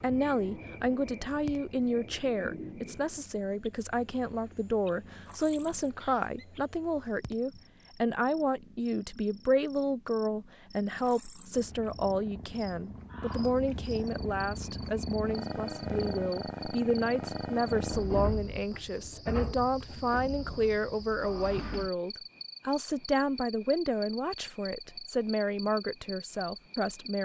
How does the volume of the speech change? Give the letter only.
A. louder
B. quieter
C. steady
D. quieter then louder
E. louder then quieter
C.